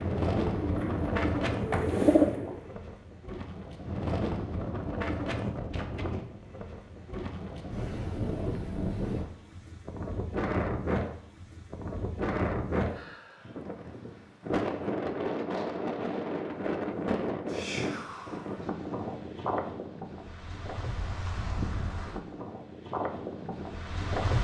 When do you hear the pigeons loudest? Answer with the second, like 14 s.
2 s.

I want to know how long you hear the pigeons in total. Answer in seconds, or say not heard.
3 s.